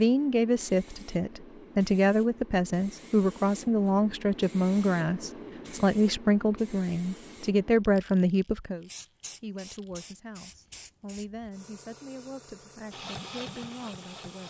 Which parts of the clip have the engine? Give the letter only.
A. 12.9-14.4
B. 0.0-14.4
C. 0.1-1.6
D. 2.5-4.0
A.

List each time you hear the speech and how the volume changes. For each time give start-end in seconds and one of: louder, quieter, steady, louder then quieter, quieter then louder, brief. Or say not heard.
0.0-14.4 quieter.